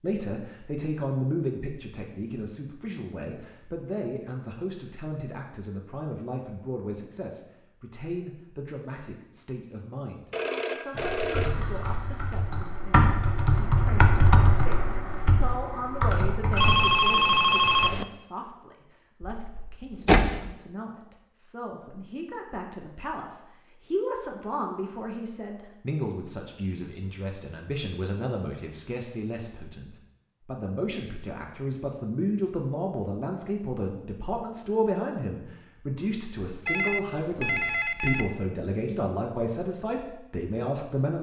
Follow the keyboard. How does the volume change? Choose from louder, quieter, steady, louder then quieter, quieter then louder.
louder then quieter.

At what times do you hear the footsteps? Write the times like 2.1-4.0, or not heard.
not heard.